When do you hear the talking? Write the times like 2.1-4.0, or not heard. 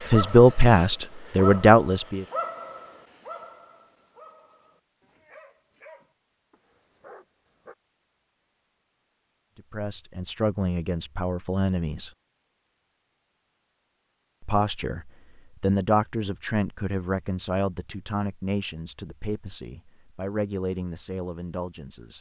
0.0-2.2, 9.7-12.1, 14.4-22.1.